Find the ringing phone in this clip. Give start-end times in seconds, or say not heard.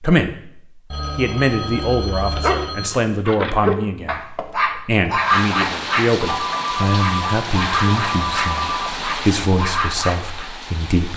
0.9-2.9, 6.2-8.9.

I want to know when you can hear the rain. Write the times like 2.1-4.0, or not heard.
5.2-11.1.